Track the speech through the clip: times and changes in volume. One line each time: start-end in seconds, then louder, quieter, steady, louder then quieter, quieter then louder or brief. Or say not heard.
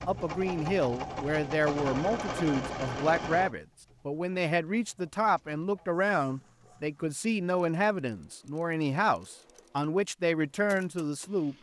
0.1-11.5 steady.